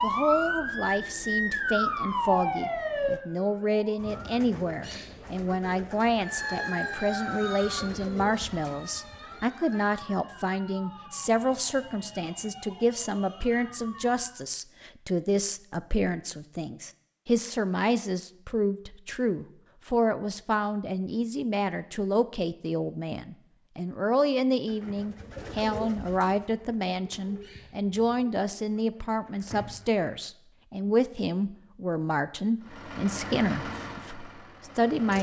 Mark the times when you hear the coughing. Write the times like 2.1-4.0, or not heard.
not heard.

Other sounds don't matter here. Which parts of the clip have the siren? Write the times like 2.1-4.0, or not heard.
0.0-4.3, 6.2-14.4.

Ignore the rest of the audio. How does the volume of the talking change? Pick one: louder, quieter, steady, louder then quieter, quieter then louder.
steady.